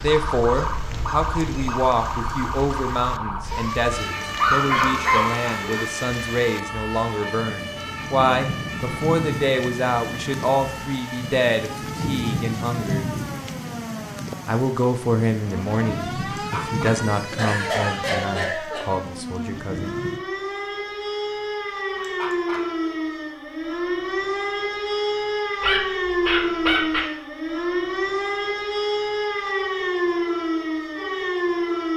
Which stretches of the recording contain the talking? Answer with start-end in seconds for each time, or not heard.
0.0-13.1, 14.4-20.0.